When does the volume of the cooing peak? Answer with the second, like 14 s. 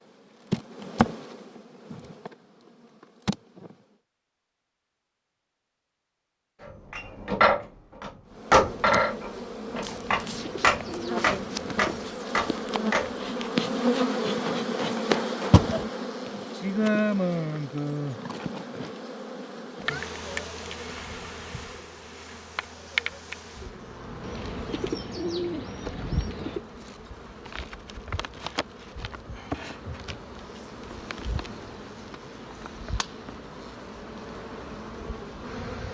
25 s.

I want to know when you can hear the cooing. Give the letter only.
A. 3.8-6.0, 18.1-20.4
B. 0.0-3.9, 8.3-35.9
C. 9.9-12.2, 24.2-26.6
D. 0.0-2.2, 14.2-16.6
C.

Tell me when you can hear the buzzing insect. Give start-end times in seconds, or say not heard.
0.0-3.9, 8.3-35.9.